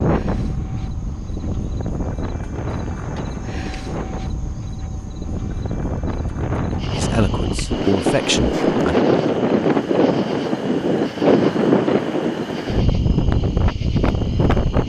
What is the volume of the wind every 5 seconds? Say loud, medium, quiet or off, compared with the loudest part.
medium, loud, loud.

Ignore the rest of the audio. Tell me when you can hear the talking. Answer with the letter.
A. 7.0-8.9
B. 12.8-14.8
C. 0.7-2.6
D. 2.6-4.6
A.